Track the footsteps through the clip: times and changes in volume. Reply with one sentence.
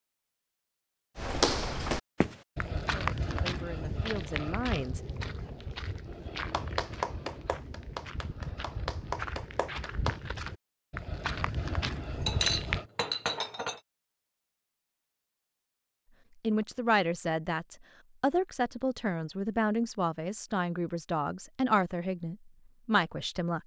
The footsteps can be heard from 1.1 to 12.8 s, getting quieter then louder.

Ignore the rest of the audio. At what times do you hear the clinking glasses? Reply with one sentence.
You can hear the clinking glasses from 12.2 to 13.8 s.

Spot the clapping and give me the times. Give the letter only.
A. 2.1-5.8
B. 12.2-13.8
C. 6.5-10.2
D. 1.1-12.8
C.